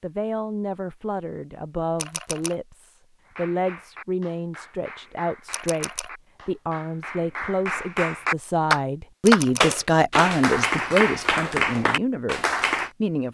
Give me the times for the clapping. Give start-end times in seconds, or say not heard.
3.2-12.9.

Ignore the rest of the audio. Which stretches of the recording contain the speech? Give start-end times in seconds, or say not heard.
0.0-13.2.